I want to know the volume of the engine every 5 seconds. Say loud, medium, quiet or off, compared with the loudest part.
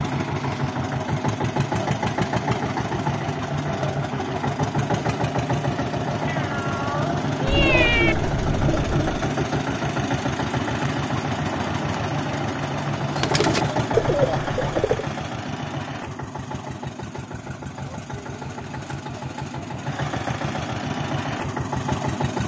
loud, loud, loud, medium, loud.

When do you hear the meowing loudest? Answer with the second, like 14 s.
8 s.